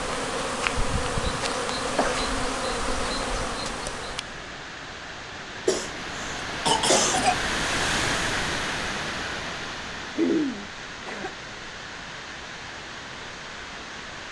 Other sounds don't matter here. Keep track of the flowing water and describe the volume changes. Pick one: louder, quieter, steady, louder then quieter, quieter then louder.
louder then quieter.